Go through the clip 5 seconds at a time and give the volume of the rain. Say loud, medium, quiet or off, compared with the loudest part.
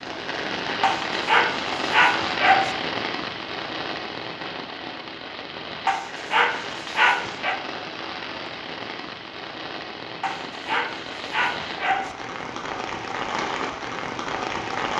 loud, medium, loud.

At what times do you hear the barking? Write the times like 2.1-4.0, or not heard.
0.8-2.8, 5.8-7.5, 10.2-12.2.